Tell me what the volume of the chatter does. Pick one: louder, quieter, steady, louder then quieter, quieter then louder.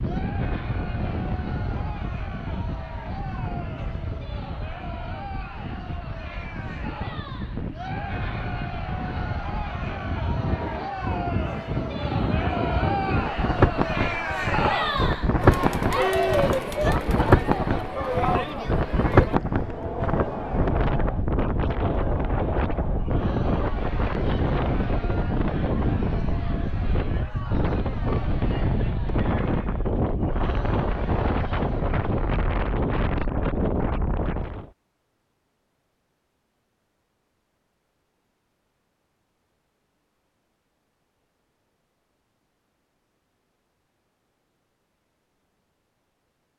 louder then quieter.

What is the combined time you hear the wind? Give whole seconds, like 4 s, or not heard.
35 s.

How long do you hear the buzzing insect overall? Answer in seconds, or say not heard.
not heard.